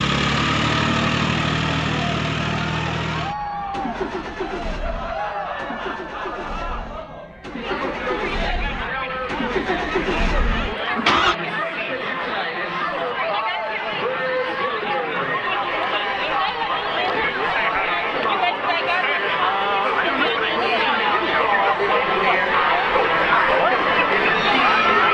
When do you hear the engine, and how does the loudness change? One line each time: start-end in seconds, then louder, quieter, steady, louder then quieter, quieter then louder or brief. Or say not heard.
0.0-11.3 quieter then louder.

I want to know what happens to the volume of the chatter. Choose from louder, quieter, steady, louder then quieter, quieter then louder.
louder.